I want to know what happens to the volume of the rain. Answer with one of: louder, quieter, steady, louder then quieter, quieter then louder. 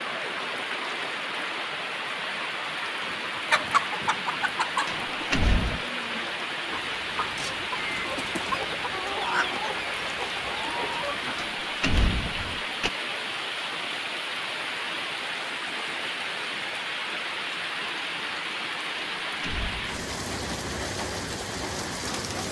steady.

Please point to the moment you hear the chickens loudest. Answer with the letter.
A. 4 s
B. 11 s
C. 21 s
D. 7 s
A.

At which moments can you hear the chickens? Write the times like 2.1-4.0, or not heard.
3.0-11.5.